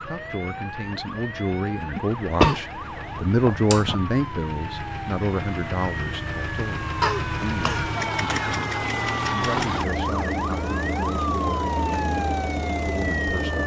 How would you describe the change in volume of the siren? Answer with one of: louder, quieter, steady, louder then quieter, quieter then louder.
louder.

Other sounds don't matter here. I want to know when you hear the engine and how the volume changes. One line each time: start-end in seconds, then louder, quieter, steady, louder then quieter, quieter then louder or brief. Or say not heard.
0.0-13.6 louder.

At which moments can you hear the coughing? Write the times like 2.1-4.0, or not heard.
1.9-4.0, 7.0-8.5.